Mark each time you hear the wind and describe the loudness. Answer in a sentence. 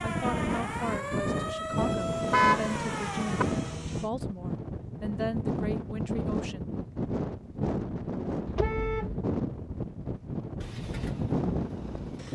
You can hear the wind from 0.0 to 12.3 s, at a steady volume.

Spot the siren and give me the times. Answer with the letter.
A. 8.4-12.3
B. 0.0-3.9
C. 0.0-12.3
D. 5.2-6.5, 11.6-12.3
B.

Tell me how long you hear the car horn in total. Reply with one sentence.
The car horn can be heard for 2 seconds in total.